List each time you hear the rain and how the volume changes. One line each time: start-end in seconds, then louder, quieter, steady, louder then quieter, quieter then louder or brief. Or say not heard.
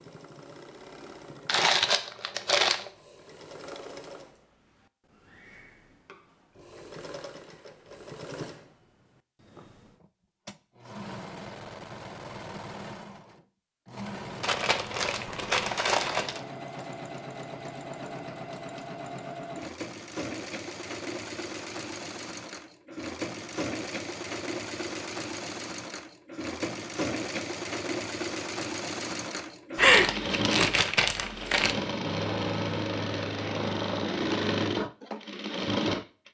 not heard.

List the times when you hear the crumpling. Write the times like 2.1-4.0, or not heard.
1.4-2.9, 14.4-16.4, 29.8-31.8.